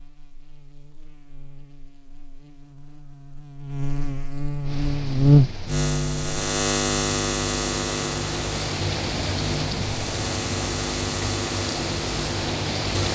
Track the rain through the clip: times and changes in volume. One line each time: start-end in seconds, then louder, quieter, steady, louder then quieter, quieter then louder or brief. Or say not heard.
4.6-13.1 louder.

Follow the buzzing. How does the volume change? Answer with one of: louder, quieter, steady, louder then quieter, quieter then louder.
louder then quieter.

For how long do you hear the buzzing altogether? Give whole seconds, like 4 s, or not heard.
13 s.